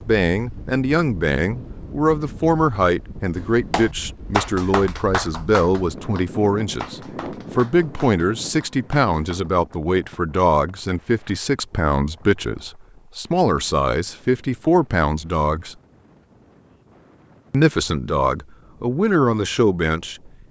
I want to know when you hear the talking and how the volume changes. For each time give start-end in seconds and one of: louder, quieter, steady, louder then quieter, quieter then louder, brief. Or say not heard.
0.1-15.8 steady
17.5-20.3 brief.